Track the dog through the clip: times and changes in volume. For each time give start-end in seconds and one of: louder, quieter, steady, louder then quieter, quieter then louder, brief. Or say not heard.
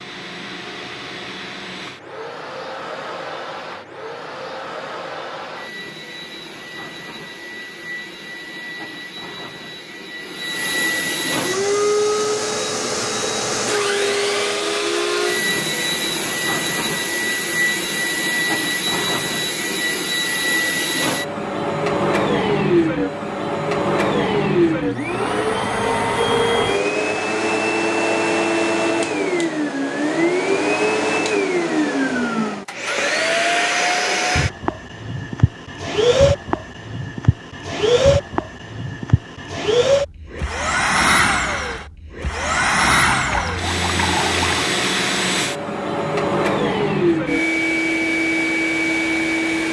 not heard.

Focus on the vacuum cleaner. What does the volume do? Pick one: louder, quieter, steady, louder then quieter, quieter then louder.
louder.